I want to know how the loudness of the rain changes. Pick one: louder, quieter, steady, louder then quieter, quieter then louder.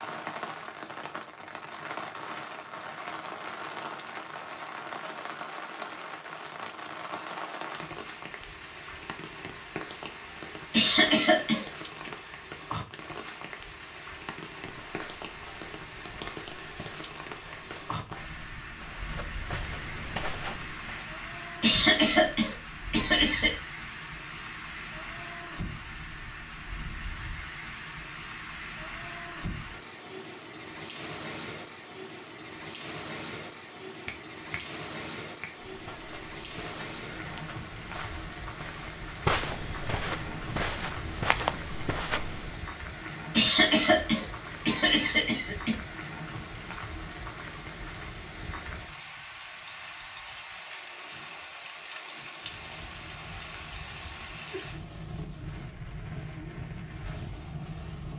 steady.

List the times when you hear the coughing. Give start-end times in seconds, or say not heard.
10.7-12.1, 21.6-23.6, 43.3-45.8.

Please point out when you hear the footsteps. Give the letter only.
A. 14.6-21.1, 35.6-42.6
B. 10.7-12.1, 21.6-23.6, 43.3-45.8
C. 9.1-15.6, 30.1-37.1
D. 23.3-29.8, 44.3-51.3
A.